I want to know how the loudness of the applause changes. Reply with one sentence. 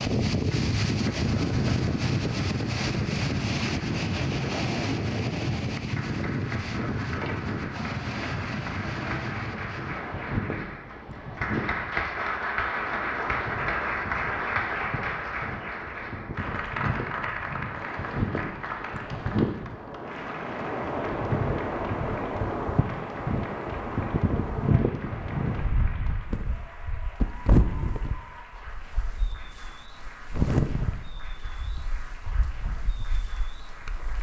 The volume of the applause goes up, then down.